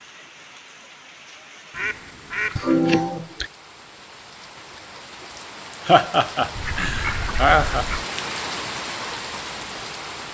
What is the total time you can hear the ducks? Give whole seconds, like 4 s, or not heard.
3 s.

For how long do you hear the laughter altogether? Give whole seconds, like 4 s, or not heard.
3 s.